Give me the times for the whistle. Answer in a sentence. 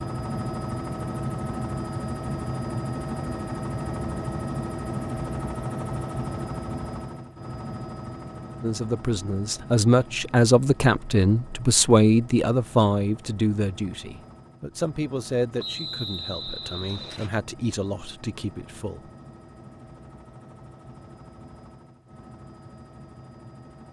You can hear the whistle from 15.6 to 17.3 s.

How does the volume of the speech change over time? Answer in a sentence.
The loudness of the speech goes down.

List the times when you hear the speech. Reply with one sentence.
You can hear the speech from 8.6 to 19.0 s.